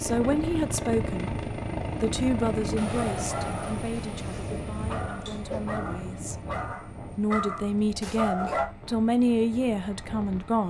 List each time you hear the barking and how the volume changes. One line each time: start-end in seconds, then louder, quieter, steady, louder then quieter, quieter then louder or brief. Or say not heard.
2.9-8.7 louder.